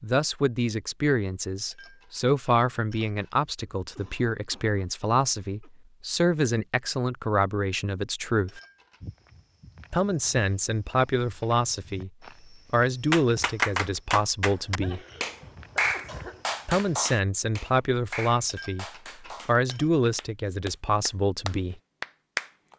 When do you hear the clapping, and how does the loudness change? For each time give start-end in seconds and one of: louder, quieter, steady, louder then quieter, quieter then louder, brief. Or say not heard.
13.1-22.7 quieter then louder.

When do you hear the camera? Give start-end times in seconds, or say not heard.
not heard.